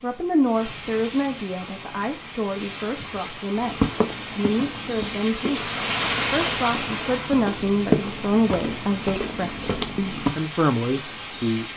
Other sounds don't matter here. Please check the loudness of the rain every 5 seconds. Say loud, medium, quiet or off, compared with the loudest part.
medium, loud, medium.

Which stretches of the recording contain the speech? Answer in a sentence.
The speech can be heard from 0.0 to 11.7 s.